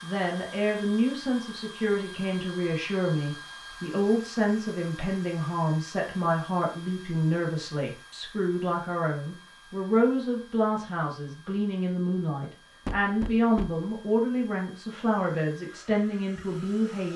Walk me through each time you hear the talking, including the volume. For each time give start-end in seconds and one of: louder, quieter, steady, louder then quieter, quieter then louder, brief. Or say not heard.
0.0-17.1 steady.